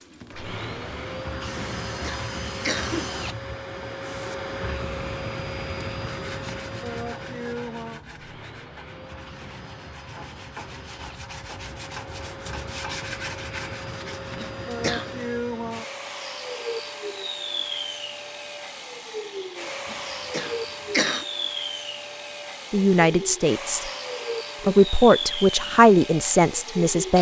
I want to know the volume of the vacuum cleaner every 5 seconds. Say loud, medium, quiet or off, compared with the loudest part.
loud, loud, medium, loud, loud, loud.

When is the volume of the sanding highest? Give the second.
13 s.